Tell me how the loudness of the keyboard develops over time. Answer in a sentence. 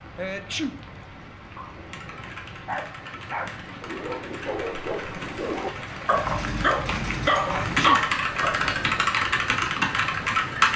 The volume of the keyboard goes up.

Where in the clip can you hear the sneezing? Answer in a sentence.
You can hear the sneezing from 0.1 to 0.8 s and from 7.4 to 8.1 s.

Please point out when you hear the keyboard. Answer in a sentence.
You can hear the keyboard from 1.8 to 10.7 s.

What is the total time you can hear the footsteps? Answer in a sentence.
The footsteps can't be heard in this clip.